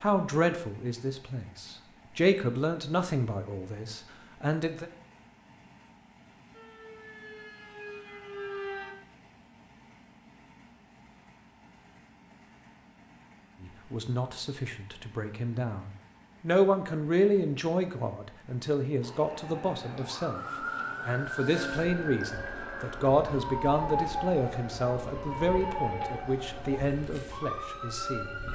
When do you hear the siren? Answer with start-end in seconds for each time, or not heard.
6.5-8.9, 19.0-28.5.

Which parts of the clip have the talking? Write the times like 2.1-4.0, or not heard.
0.0-4.8, 13.6-28.4.